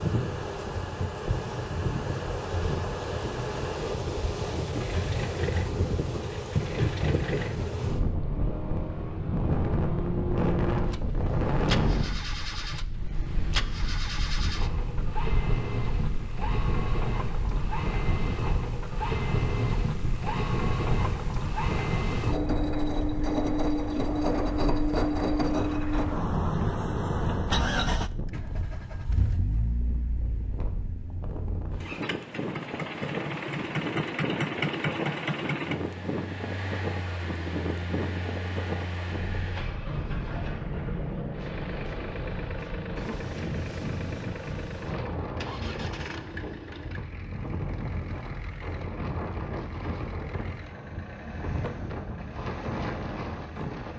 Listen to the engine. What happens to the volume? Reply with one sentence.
The loudness of the engine goes up, then down.